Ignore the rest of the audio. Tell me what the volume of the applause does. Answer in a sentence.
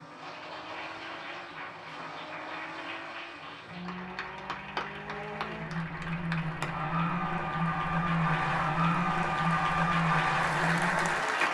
The volume of the applause goes up.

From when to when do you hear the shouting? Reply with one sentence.
The shouting can't be heard in this clip.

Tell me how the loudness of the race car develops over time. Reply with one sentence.
The loudness of the race car goes up.